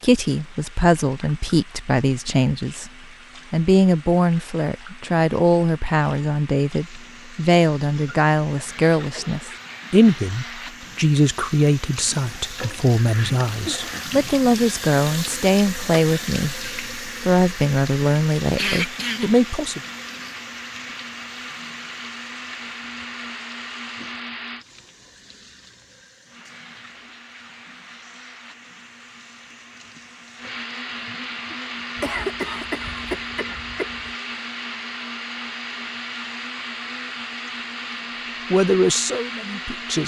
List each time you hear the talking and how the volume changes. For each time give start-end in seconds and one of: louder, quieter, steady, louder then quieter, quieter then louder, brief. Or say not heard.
0.0-2.9 brief
3.5-19.8 steady
38.5-40.0 brief.